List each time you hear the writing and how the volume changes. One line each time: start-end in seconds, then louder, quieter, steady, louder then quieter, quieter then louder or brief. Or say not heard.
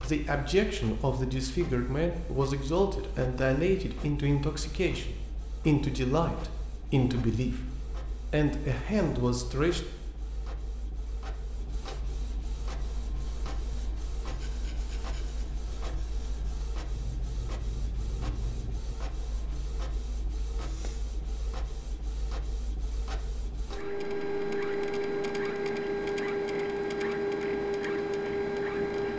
12.9-19.6 louder.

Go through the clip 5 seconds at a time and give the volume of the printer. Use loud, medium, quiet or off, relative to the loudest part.
quiet, quiet, quiet, quiet, medium, loud.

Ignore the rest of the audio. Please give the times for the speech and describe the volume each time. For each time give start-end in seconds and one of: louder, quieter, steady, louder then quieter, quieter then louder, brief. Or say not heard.
0.0-7.7 steady
8.3-9.8 brief.